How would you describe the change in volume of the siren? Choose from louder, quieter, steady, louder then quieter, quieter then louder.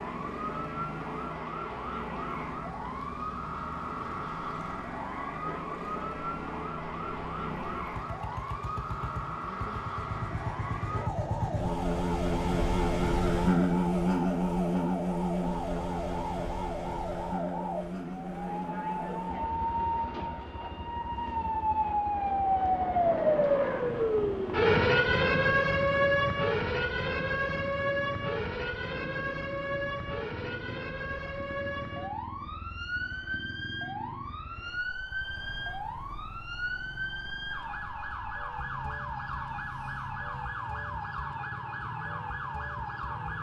louder then quieter.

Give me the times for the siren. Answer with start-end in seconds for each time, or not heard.
0.0-43.3.